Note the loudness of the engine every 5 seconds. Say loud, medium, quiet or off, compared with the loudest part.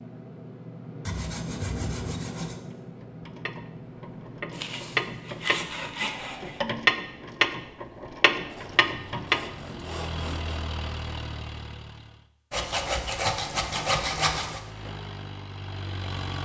loud, medium, loud, loud.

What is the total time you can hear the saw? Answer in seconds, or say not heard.
8 s.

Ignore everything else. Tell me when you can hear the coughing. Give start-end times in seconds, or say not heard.
not heard.